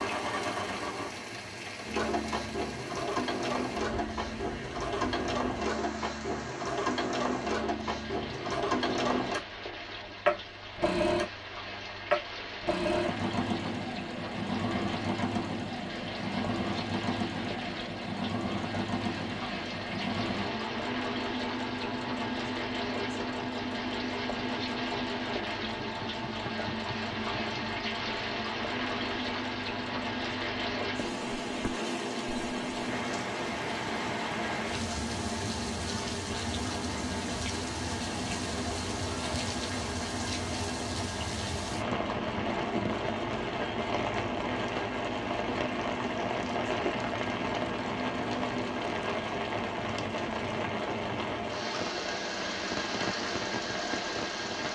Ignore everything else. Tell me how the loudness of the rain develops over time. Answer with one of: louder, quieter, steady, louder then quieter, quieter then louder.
louder.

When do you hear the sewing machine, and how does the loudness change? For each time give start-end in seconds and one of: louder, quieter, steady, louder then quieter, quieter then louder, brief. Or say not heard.
0.0-54.7 quieter.